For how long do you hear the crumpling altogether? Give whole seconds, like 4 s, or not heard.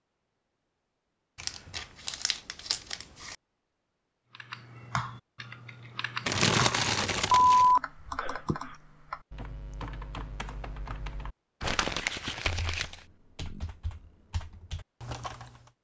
5 s.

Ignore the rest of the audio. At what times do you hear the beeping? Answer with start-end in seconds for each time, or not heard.
7.3-8.7.